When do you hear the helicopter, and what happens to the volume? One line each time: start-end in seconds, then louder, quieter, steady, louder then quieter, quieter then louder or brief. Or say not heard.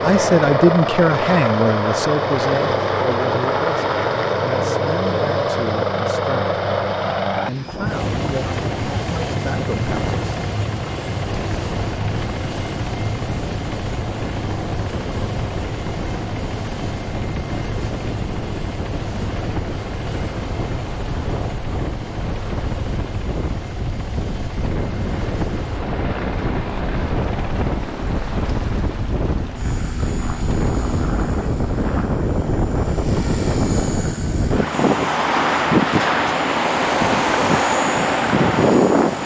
0.0-39.2 quieter.